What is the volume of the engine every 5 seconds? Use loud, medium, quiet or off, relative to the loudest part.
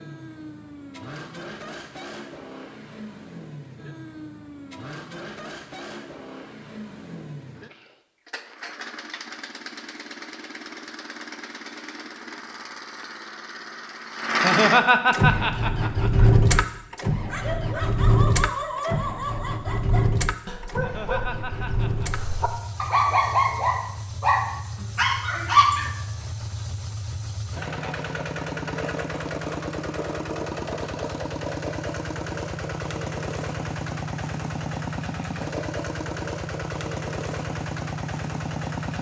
quiet, quiet, medium, loud, medium, medium, medium, medium.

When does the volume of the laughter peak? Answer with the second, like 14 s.
15 s.